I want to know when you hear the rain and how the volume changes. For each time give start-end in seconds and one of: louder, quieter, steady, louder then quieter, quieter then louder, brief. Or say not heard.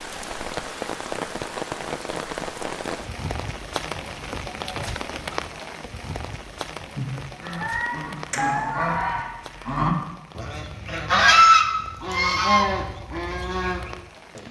0.0-14.4 quieter.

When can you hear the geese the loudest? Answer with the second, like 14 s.
11 s.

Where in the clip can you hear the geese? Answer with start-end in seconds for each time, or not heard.
7.0-13.9.